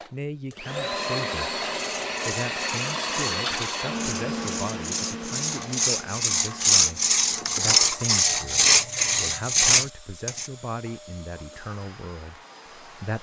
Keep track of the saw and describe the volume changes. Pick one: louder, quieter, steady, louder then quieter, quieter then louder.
louder.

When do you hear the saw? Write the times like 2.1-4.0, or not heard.
1.8-10.5.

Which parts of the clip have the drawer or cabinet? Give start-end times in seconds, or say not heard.
not heard.